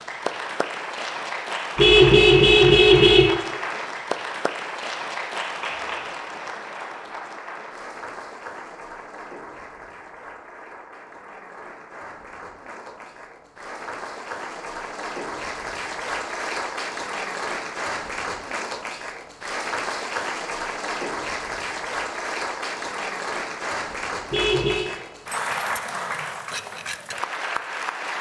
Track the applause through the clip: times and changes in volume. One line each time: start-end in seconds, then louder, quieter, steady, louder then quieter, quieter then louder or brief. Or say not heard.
0.0-28.1 quieter then louder.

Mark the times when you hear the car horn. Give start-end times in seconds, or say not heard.
1.8-3.2, 24.3-24.9.